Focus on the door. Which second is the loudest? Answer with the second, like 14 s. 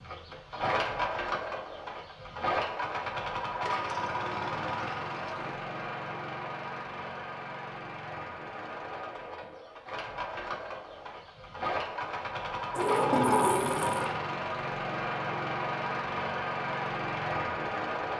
13 s.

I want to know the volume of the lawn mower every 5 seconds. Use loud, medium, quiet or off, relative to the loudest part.
loud, medium, loud, loud.